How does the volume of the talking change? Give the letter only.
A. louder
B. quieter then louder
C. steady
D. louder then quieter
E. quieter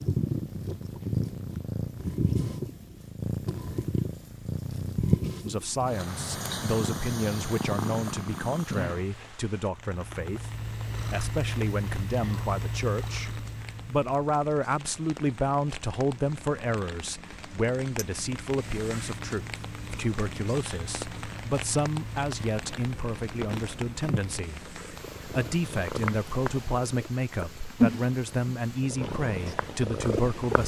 C.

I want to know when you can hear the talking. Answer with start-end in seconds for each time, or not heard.
5.4-30.6.